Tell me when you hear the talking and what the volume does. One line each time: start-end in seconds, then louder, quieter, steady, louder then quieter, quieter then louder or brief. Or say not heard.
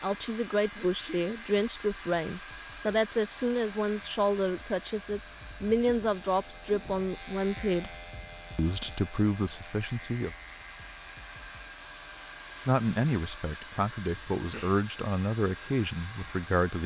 0.0-7.9 steady
8.6-10.3 brief
12.7-16.8 steady.